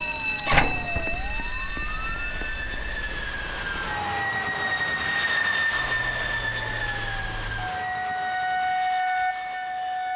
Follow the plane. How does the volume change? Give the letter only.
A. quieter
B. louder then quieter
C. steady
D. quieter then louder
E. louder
B.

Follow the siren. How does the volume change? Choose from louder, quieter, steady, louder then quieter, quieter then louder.
quieter then louder.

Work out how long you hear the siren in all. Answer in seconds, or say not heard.
10 s.